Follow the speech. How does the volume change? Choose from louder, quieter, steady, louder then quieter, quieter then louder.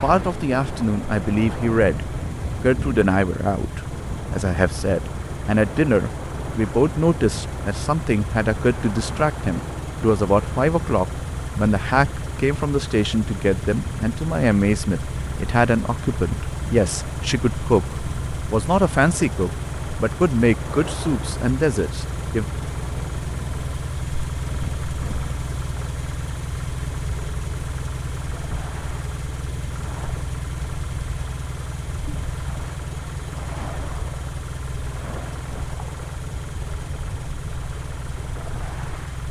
steady.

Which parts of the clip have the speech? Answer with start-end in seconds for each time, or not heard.
0.0-22.4.